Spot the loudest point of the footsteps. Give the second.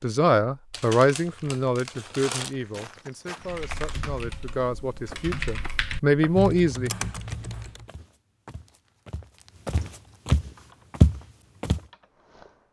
11 s.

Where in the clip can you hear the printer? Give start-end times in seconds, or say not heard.
not heard.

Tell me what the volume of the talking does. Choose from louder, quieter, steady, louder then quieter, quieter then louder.
quieter then louder.